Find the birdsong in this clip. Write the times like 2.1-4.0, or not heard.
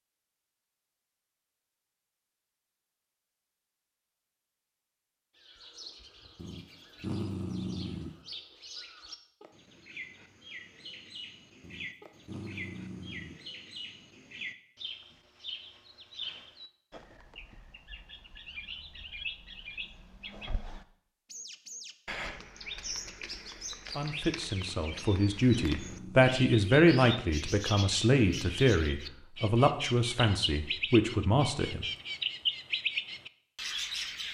5.3-34.2.